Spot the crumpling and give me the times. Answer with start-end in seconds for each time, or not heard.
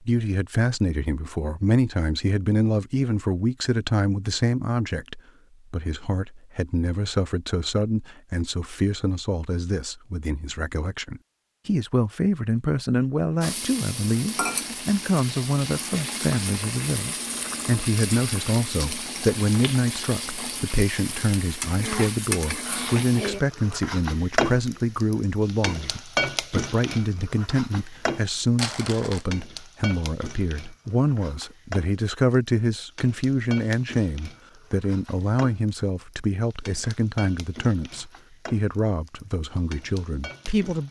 28.2-29.2.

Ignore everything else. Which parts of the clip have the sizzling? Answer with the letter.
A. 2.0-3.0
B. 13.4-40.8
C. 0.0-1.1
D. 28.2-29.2
B.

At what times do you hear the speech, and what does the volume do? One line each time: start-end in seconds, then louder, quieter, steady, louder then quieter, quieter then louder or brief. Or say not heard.
0.0-40.8 steady.